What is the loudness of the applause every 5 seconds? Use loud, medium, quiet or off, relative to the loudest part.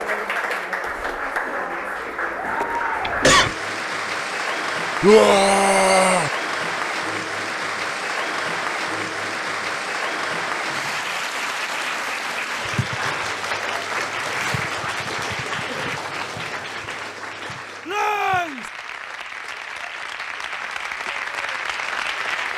loud, loud, loud, medium, loud.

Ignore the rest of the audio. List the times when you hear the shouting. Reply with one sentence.
The shouting can be heard from 5.0 to 6.3 s and from 17.9 to 18.7 s.